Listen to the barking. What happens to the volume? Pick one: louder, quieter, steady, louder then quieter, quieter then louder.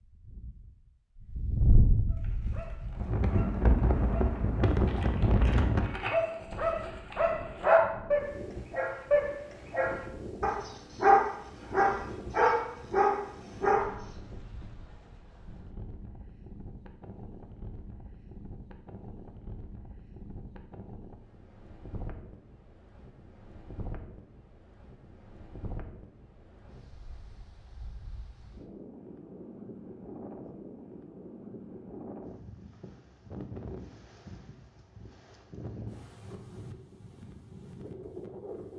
louder.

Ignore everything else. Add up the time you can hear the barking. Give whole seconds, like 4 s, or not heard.
12 s.